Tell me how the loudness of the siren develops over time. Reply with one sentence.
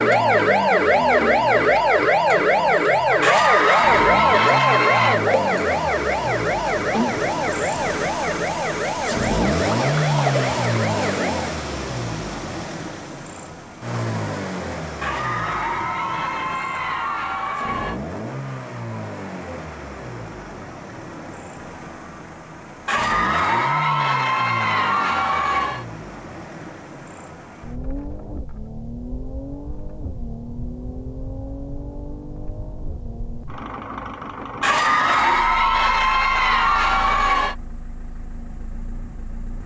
The volume of the siren goes down.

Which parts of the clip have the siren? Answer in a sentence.
You can hear the siren from 0.0 to 11.6 s.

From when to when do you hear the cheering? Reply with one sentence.
You can hear the cheering from 3.2 to 5.2 s, from 15.0 to 18.0 s, from 22.9 to 25.9 s and from 34.6 to 37.5 s.